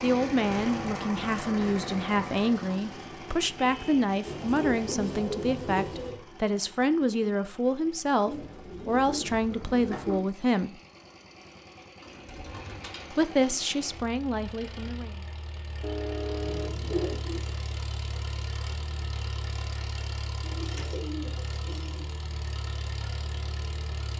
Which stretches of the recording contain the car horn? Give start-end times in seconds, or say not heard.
3.5-4.2, 15.8-17.2.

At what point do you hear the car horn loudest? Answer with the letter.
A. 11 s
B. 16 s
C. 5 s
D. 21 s
B.